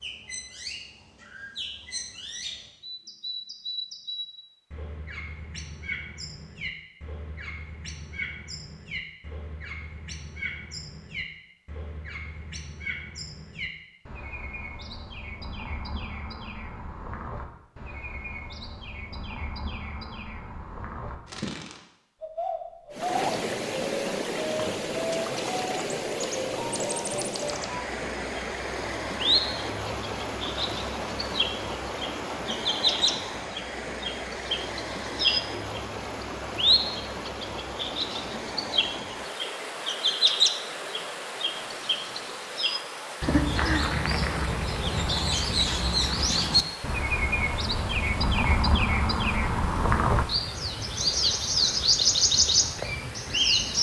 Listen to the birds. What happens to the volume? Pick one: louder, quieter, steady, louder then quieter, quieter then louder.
louder.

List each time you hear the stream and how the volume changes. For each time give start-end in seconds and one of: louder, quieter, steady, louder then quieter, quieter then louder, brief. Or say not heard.
22.9-53.7 quieter.